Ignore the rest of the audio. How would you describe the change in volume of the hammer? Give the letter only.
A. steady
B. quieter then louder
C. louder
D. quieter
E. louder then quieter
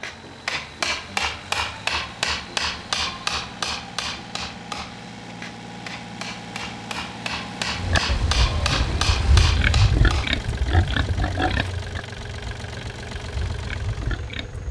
B.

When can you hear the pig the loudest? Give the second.
10 s.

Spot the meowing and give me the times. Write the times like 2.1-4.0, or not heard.
not heard.